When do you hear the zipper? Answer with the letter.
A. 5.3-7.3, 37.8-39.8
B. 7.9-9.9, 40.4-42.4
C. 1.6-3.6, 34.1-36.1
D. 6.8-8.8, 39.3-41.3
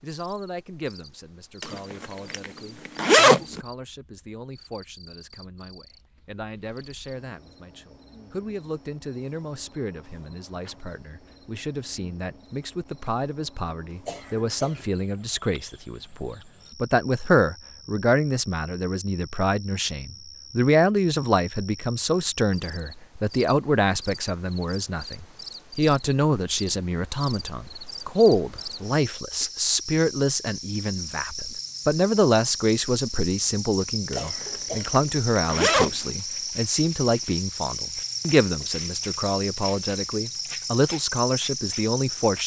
C.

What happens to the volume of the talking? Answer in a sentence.
The volume of the talking goes up.